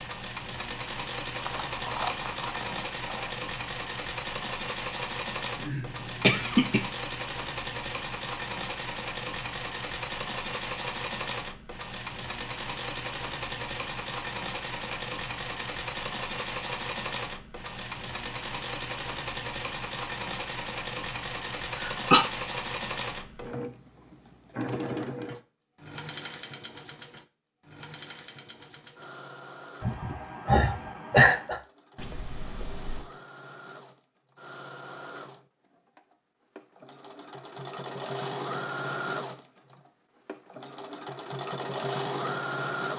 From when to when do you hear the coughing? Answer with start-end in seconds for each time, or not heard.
5.6-6.8, 21.4-22.2, 29.8-31.6.